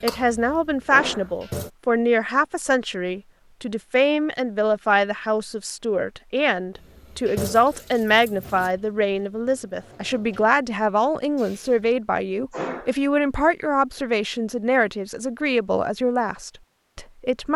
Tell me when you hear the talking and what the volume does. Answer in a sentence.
You can hear the talking from 0.0 to 17.5 s, at a steady volume.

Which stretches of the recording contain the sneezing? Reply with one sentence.
The sneezing can be heard from 0.9 to 1.3 s and from 12.5 to 12.9 s.